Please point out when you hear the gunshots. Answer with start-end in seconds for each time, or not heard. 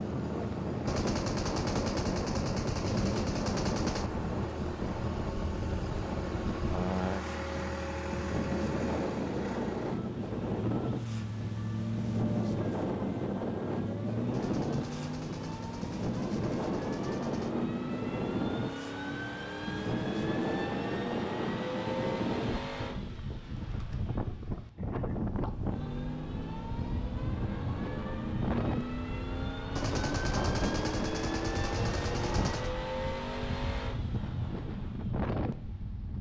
0.8-4.1, 14.3-17.6, 29.8-32.8.